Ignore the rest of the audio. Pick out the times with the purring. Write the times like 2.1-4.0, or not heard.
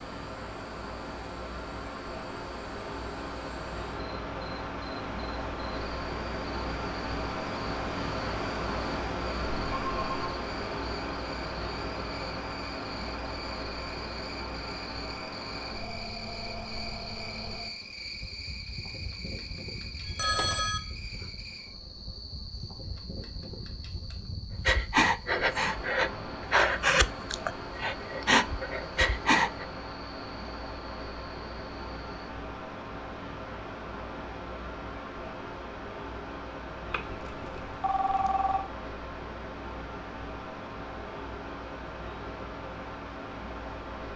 not heard.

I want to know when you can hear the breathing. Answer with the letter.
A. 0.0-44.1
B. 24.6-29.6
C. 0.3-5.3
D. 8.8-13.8
B.